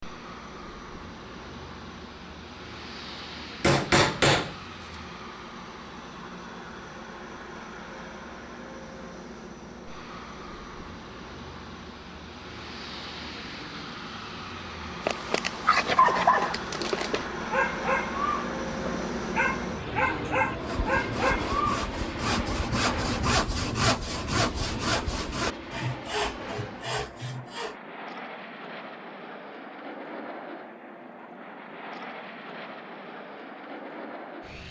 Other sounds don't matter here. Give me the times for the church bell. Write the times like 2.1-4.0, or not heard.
not heard.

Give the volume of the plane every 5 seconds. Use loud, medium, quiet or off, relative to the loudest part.
medium, medium, medium, loud, loud, medium, medium.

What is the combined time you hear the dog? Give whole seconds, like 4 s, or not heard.
7 s.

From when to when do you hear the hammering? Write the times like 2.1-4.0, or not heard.
3.6-4.5.